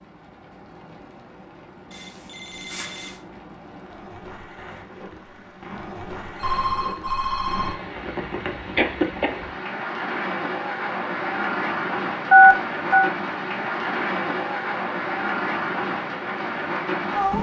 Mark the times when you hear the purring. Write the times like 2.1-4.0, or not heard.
not heard.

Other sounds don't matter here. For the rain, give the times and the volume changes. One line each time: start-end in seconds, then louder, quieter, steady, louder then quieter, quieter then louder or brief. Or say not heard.
0.0-17.3 louder.